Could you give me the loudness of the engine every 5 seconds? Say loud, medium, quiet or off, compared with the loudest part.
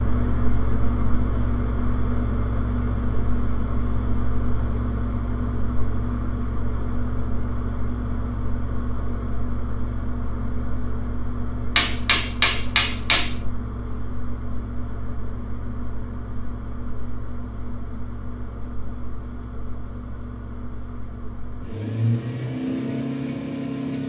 loud, loud, medium, medium, loud.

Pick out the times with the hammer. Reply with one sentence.
The hammer can be heard from 11.8 to 13.3 s.